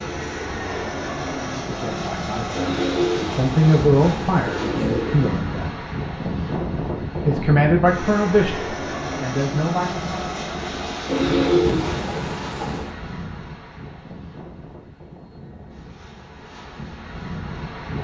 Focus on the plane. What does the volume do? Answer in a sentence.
The loudness of the plane goes down.